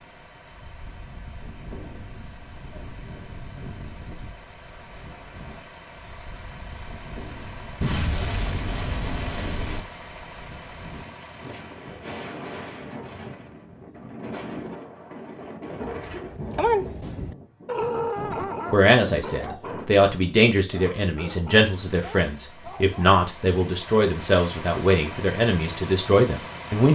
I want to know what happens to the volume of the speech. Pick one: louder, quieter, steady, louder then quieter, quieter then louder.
steady.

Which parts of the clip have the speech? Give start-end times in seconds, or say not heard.
18.2-26.9.